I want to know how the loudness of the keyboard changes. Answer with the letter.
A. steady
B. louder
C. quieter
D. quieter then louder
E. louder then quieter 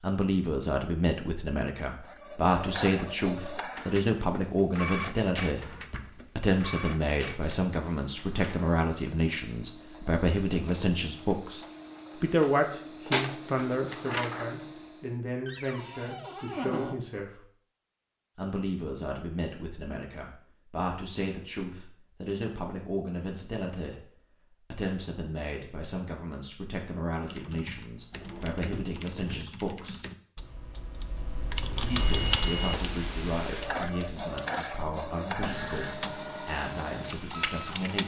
E.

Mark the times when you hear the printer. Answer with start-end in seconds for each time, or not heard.
2.0-15.1, 31.8-38.0.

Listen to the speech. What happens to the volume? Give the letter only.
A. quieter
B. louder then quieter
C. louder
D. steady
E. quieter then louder
A.